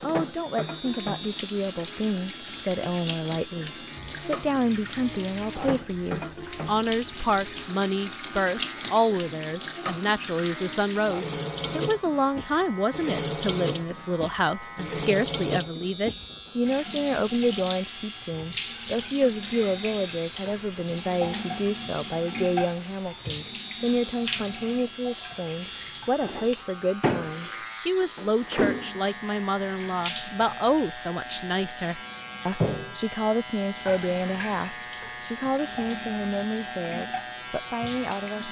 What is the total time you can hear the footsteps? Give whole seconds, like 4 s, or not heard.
not heard.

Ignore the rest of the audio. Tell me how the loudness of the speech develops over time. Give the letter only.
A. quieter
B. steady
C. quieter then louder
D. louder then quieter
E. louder
B.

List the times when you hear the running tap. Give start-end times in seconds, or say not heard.
0.0-38.4.